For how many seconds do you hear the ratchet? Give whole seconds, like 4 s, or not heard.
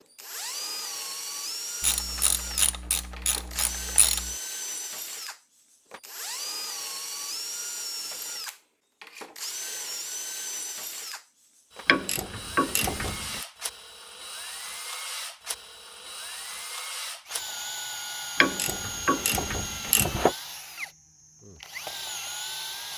6 s.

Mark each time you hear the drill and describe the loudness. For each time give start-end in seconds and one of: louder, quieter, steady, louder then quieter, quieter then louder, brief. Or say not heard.
0.0-22.9 steady.